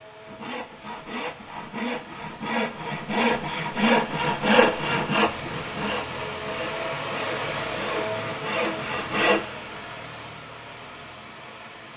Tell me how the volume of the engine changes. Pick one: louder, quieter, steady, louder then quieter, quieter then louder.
louder then quieter.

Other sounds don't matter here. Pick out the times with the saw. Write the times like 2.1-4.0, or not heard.
0.2-9.4.